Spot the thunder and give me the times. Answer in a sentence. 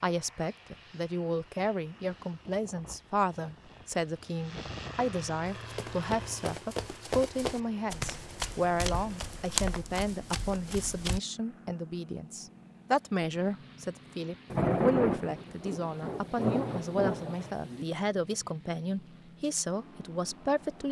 You can hear the thunder from 14.5 to 17.9 s.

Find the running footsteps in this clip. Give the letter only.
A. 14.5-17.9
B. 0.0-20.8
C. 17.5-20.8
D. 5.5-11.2
D.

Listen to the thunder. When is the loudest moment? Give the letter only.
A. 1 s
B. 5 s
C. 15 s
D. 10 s
C.